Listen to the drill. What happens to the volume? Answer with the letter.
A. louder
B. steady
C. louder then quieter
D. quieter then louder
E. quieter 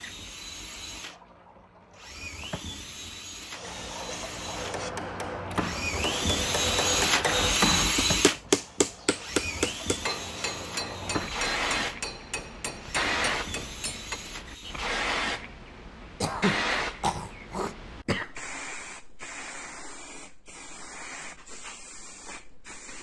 C.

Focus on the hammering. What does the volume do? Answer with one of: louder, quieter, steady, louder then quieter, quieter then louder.
louder then quieter.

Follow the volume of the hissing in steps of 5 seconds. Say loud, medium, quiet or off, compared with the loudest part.
medium, medium, loud, loud, medium.